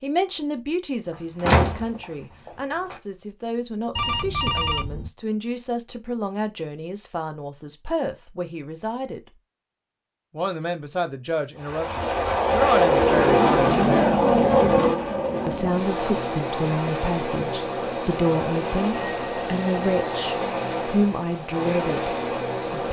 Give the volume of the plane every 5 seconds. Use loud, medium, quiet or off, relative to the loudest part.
off, off, loud, medium, medium.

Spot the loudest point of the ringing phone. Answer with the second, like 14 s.
5 s.